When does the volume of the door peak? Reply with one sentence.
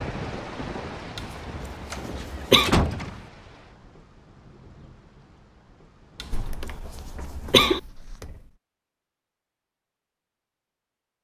The volume of the door peaks at 3 seconds.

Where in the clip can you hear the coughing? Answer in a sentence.
The coughing can be heard from 1.1 to 2.7 s and from 6.2 to 7.8 s.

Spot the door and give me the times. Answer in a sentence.
The door can be heard from 1.9 to 3.2 s and from 6.3 to 8.5 s.